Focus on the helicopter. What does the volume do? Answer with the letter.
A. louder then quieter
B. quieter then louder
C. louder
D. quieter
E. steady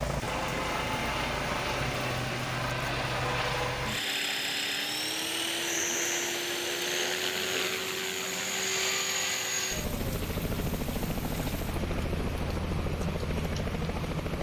E.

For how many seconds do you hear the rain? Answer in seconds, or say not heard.
14 s.